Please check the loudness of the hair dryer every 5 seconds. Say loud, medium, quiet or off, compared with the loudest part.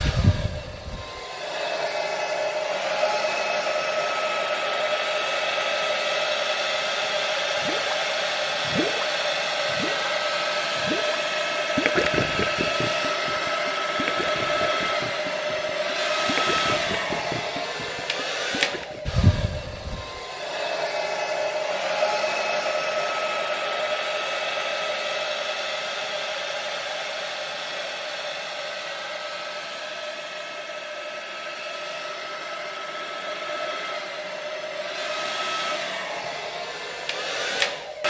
loud, loud, loud, loud, loud, medium, medium, loud.